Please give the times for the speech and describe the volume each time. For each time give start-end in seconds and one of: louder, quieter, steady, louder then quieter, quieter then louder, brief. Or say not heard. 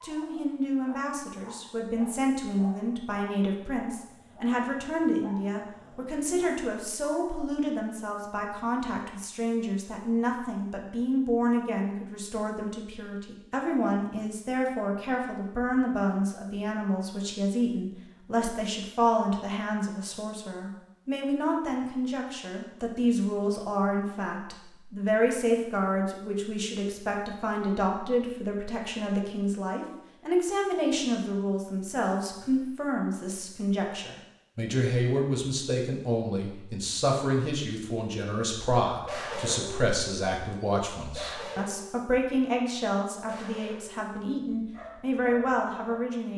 0.0-46.3 steady.